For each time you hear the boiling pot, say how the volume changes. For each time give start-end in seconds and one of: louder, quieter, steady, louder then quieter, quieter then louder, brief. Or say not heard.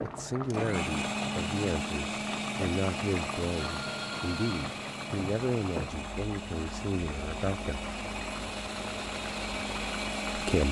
0.0-10.5 steady.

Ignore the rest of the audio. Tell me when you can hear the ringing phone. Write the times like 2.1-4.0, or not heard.
3.6-4.7.